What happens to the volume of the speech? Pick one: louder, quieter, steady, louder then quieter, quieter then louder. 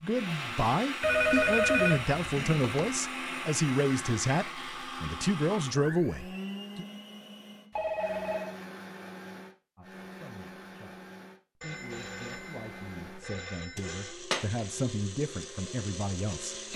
quieter then louder.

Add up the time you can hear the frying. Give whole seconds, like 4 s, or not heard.
not heard.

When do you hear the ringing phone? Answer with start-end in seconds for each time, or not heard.
1.0-2.9, 7.7-8.6, 11.6-14.2.